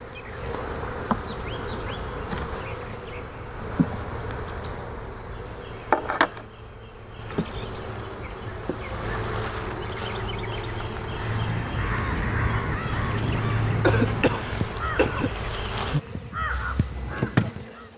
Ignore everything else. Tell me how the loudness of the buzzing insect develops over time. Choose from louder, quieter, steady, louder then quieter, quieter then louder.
steady.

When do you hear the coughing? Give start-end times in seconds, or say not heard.
13.8-15.3.